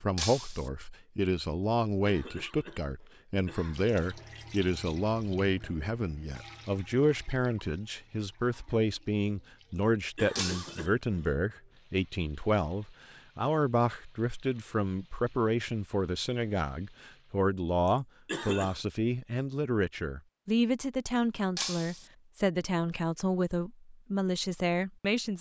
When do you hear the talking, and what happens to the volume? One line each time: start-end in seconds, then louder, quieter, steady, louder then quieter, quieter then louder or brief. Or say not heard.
0.0-25.3 steady.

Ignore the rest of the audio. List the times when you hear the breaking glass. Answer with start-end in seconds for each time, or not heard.
0.1-0.7, 10.3-10.8, 21.6-22.1.